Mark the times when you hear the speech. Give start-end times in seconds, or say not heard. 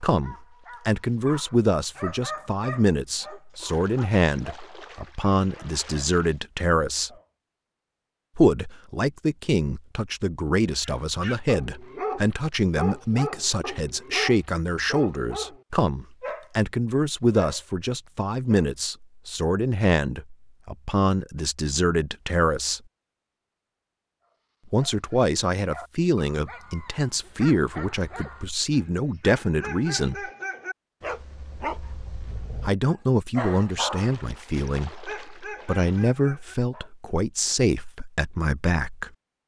0.0-7.1, 8.3-22.8, 24.7-30.3, 32.6-39.1.